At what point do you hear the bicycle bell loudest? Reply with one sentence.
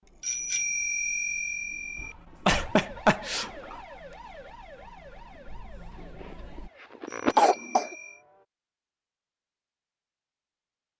The loudest moment of the bicycle bell is at 1 second.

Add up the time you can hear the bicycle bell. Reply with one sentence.
The bicycle bell can be heard for 3 seconds in total.